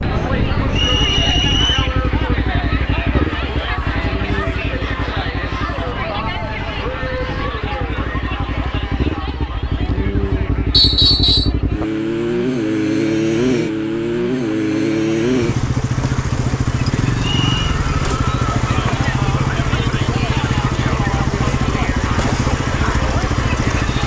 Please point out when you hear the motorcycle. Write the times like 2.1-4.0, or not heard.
0.0-24.0.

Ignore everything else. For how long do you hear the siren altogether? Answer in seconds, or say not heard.
not heard.